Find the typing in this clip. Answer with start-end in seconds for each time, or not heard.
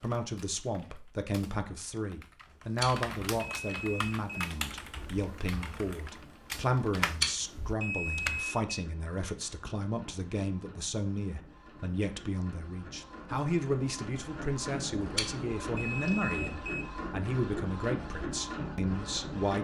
0.0-8.4.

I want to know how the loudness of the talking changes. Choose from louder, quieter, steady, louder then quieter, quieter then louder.
steady.